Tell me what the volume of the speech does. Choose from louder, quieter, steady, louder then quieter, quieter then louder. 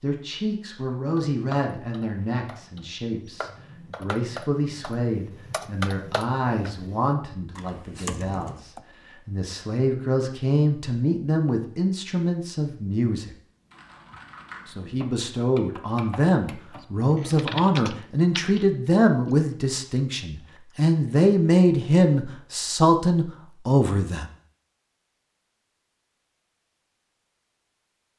louder.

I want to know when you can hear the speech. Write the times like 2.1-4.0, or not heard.
0.0-13.3, 14.7-24.3.